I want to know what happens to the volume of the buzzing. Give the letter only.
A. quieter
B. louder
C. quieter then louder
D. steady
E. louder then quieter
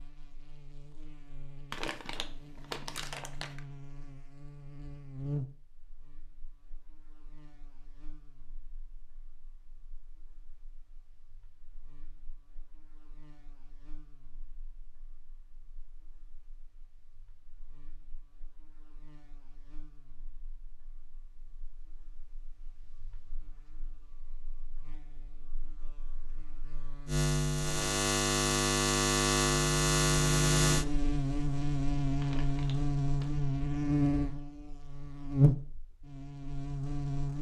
C.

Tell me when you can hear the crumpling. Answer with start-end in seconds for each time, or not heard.
1.7-3.6, 32.2-33.4.